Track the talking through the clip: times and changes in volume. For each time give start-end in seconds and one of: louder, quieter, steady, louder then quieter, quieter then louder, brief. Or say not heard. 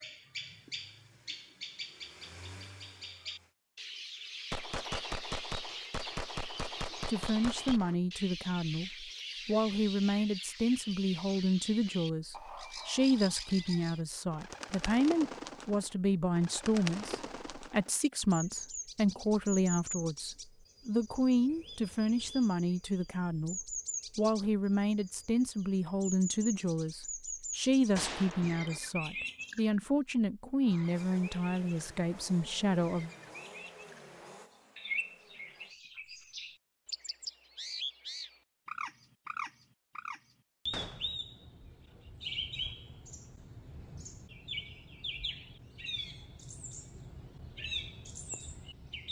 7.0-33.1 steady.